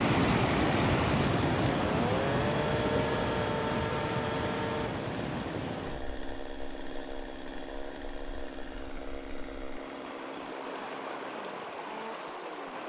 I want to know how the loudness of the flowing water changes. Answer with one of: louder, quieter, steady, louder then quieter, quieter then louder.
quieter then louder.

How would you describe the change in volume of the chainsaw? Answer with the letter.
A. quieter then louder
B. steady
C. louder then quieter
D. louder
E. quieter
E.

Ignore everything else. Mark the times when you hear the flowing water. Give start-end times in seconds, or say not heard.
0.0-12.8.